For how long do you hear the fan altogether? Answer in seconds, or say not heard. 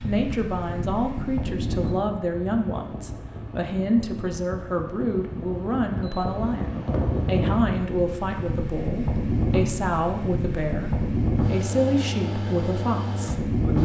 14 s.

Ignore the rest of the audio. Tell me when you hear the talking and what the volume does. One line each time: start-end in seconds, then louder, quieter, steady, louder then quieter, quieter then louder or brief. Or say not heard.
0.0-13.7 steady.